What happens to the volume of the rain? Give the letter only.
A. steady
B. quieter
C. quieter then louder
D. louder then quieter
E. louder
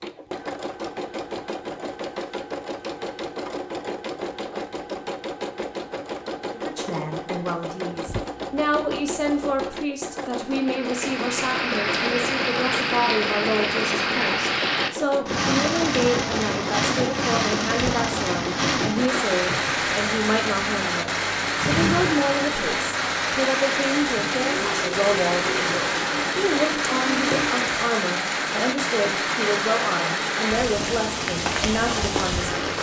A.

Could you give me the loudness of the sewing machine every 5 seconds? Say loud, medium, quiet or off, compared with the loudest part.
loud, loud, loud, loud, loud, loud, off.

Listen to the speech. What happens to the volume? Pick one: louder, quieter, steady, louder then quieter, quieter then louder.
steady.